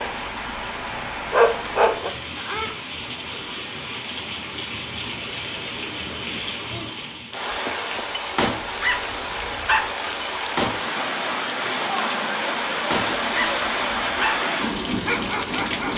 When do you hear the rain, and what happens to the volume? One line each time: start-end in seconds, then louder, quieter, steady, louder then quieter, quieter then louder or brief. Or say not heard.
0.0-15.9 louder.